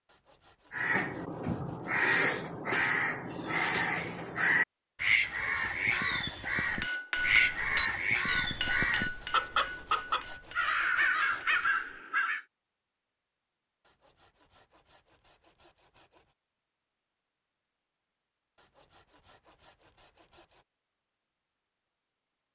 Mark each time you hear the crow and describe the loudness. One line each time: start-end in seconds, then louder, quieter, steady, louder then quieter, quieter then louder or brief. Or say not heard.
0.7-12.4 steady.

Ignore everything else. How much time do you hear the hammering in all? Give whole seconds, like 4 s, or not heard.
5 s.